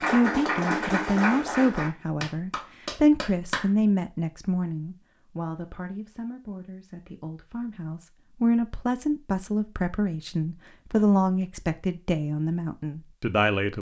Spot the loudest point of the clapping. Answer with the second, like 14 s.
1 s.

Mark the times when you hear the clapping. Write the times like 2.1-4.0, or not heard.
0.0-3.7.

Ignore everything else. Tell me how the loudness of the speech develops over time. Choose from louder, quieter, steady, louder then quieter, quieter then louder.
quieter then louder.